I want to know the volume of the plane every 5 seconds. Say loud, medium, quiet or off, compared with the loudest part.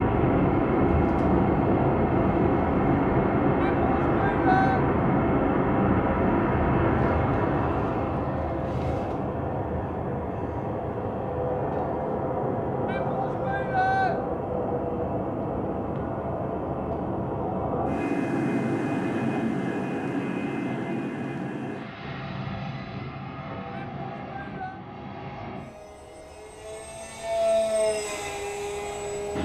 loud, loud, medium, medium, medium, medium.